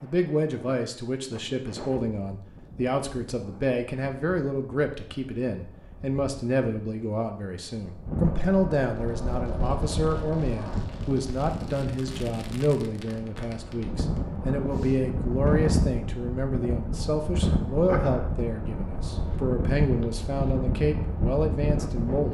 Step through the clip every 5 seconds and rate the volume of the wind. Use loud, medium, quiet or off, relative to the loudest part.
quiet, medium, medium, loud, loud.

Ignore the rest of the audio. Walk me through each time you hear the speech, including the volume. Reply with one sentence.
You can hear the speech from 0.0 to 22.2 s, at a steady volume.